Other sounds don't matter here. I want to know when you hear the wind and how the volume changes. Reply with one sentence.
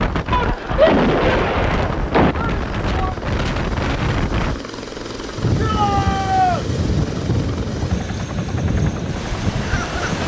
The wind can be heard from 0.0 to 10.2 s, at a steady volume.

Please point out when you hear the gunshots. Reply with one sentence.
You can hear the gunshots from 0.3 to 2.4 s.